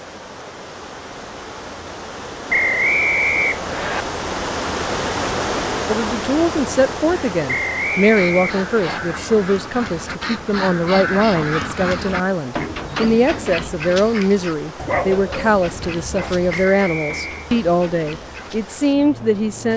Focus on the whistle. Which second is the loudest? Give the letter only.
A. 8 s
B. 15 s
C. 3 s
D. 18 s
C.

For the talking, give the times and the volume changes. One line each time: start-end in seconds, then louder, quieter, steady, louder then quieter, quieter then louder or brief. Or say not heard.
5.8-19.7 steady.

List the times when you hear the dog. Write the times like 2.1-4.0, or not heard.
14.8-16.6.